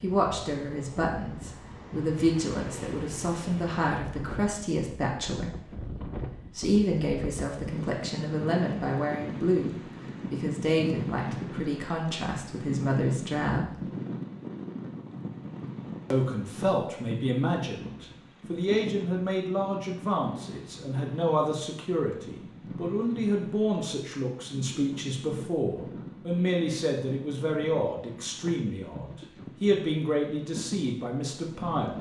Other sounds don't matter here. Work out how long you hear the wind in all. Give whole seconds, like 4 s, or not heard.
32 s.